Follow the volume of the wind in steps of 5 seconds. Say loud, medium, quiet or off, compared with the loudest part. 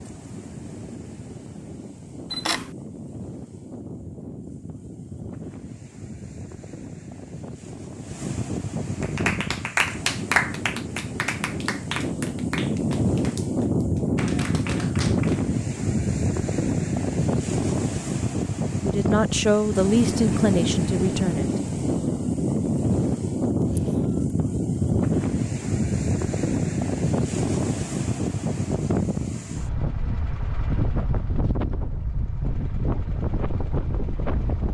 quiet, medium, loud, loud, loud, loud, medium.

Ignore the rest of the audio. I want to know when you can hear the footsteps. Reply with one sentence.
The footsteps can't be heard in this clip.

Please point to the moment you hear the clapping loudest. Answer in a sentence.
The volume of the clapping peaks at 10 seconds.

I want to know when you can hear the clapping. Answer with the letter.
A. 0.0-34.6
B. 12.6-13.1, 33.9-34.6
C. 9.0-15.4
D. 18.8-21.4
C.